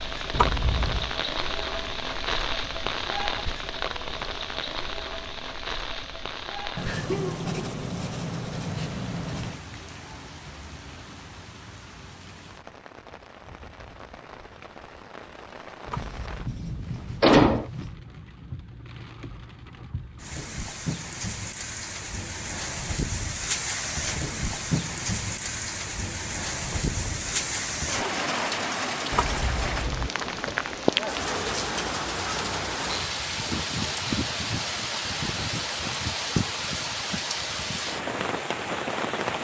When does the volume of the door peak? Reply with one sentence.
The loudest moment of the door is at 17 seconds.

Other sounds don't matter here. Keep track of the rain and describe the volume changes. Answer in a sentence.
The loudness of the rain goes down, then up.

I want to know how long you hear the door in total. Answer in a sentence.
You can hear the door for 4 seconds altogether.